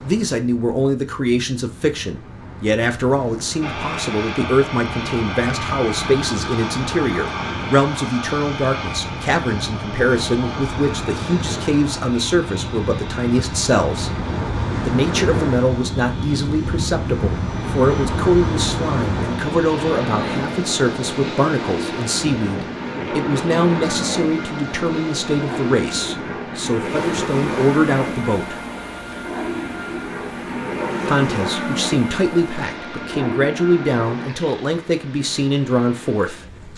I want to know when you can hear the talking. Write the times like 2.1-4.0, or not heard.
0.0-14.1, 14.8-28.6, 31.1-36.4.